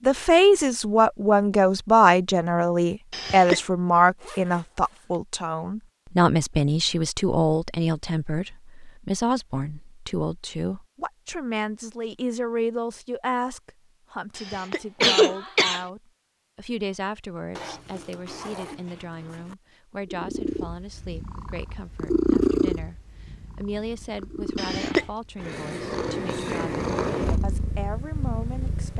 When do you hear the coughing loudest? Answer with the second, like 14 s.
15 s.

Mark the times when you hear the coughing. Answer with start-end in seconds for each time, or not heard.
3.1-3.6, 14.3-15.8, 24.6-25.1.